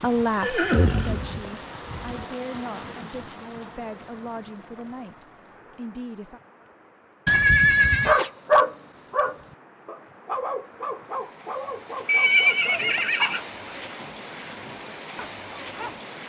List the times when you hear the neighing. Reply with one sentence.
You can hear the neighing from 0.4 to 2.2 s, from 7.2 to 8.2 s and from 12.1 to 13.4 s.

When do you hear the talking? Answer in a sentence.
The talking can be heard from 0.0 to 6.4 s.